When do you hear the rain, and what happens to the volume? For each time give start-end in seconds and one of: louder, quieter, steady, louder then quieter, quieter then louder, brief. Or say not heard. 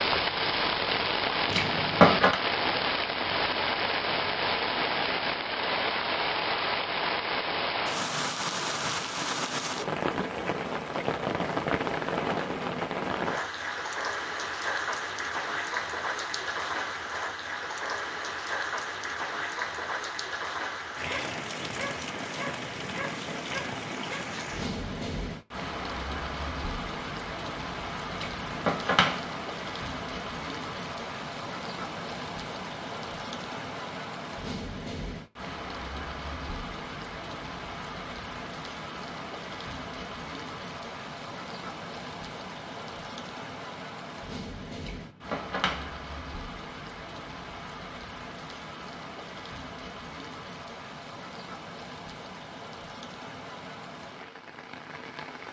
0.0-55.4 quieter.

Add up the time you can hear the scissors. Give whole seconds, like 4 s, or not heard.
3 s.